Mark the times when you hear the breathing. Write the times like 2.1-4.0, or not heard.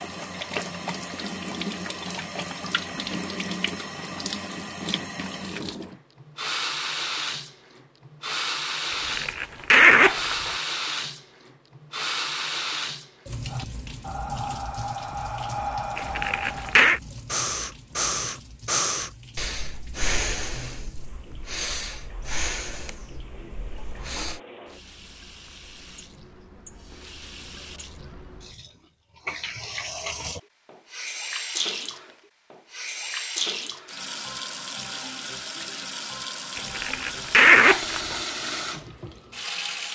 13.5-24.4.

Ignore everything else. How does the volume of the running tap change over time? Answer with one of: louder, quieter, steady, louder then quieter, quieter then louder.
quieter then louder.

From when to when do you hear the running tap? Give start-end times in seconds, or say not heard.
0.0-39.9.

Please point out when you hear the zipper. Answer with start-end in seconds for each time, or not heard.
8.9-10.6, 15.9-17.0, 36.5-38.2.